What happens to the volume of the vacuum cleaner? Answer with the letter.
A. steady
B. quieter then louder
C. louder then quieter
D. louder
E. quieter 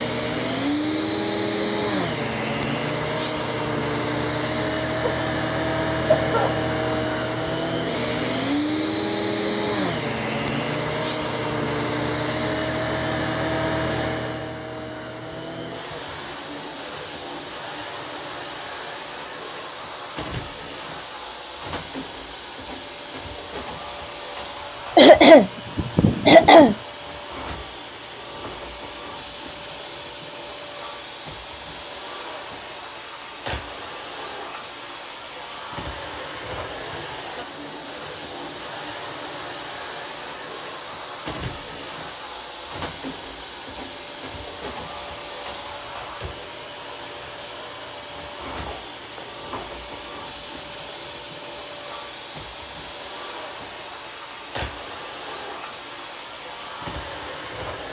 E.